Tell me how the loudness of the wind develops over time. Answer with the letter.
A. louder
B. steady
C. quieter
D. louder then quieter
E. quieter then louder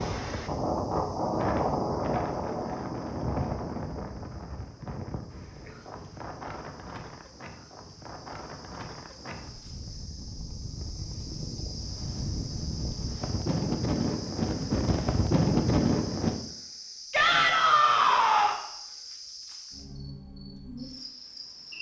E.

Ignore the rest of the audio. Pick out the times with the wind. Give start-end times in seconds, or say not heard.
0.0-16.4.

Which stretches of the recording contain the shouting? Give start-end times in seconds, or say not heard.
17.1-18.6.